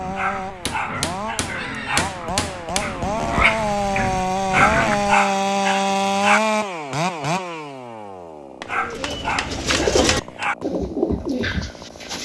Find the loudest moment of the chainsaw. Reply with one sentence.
The volume of the chainsaw peaks at 6 seconds.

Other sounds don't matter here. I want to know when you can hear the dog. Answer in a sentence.
You can hear the dog from 0.1 to 2.0 s, from 4.5 to 6.4 s and from 8.7 to 10.6 s.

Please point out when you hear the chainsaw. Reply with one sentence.
You can hear the chainsaw from 0.0 to 12.2 s.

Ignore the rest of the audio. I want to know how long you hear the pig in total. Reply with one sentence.
The pig can be heard for 5 seconds in total.